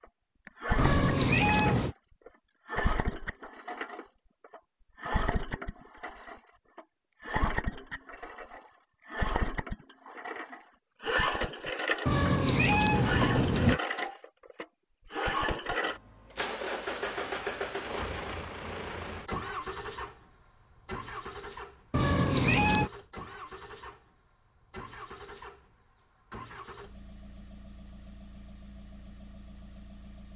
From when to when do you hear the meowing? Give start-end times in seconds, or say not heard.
0.8-1.9, 12.1-13.8, 21.9-22.9.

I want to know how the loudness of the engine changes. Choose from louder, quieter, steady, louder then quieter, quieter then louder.
quieter.